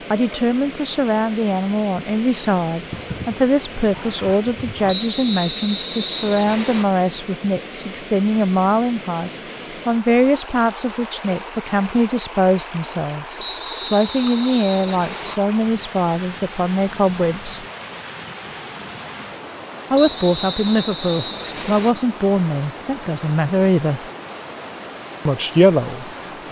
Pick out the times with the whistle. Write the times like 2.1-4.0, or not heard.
4.8-6.8, 13.3-15.3, 19.9-21.9.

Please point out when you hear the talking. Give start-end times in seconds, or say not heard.
0.1-17.6, 19.9-24.1, 25.2-26.4.